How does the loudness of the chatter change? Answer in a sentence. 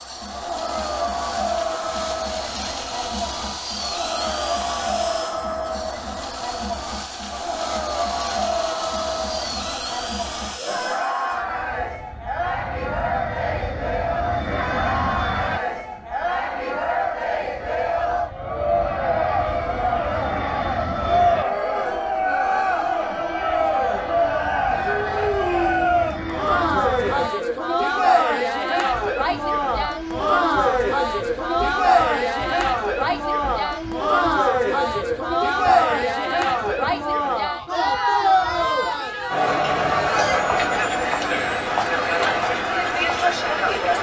The volume of the chatter goes up.